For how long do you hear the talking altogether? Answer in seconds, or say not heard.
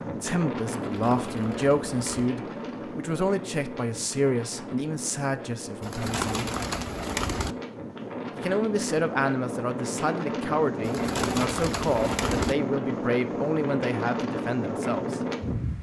13 s.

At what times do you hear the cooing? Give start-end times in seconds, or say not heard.
0.8-2.3, 5.8-7.5, 10.8-12.6.